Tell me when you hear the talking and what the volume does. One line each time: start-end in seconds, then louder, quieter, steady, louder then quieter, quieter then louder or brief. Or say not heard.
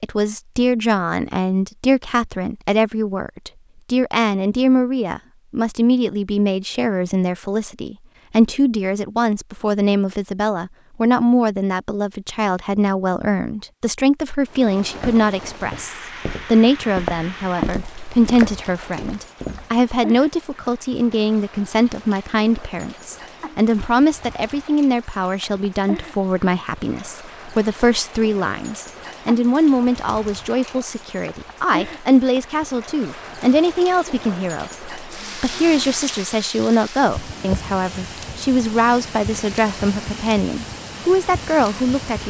0.0-42.2 steady.